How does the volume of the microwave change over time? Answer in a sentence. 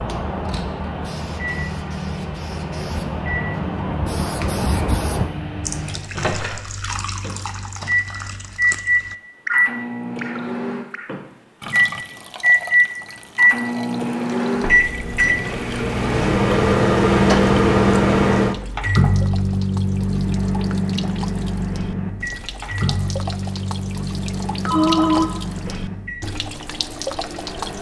The volume of the microwave goes up, then down.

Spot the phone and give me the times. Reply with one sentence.
You can hear the phone from 24.6 to 25.3 s.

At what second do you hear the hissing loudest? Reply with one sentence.
The volume of the hissing peaks at 5 seconds.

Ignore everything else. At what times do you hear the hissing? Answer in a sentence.
The hissing can be heard from 0.0 to 5.3 s.